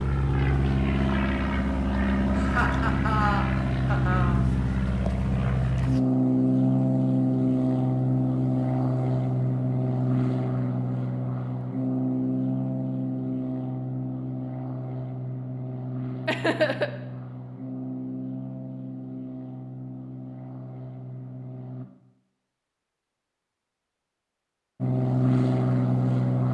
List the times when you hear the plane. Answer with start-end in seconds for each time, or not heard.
0.0-21.9, 24.8-26.4.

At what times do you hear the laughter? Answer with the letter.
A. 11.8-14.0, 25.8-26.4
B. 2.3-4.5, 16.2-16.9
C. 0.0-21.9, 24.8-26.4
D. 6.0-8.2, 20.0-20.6
B.